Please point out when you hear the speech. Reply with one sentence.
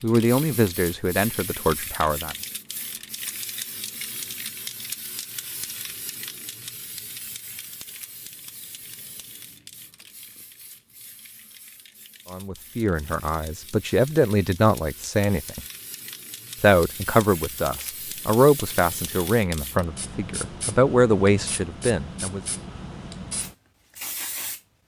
You can hear the speech from 0.0 to 2.4 s, from 12.3 to 15.6 s and from 16.6 to 22.4 s.